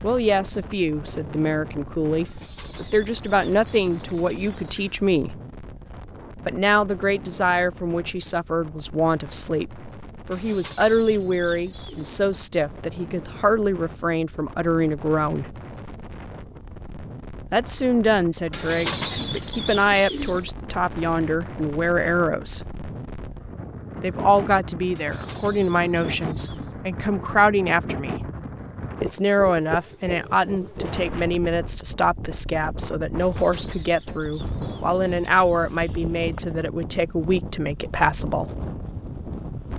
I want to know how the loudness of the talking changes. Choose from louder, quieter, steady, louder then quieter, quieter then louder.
steady.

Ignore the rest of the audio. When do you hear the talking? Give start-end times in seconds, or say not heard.
0.0-5.3, 6.5-15.4, 17.5-22.6, 24.0-28.2, 29.0-38.5.